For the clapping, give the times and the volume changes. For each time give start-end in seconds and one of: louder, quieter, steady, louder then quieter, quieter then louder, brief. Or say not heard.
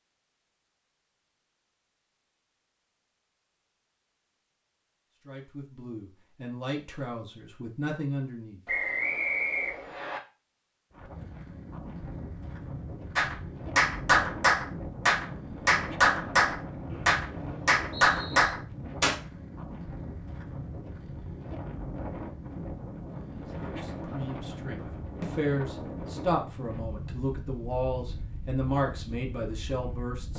13.2-19.1 steady.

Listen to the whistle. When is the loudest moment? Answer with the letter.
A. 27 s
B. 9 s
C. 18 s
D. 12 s
B.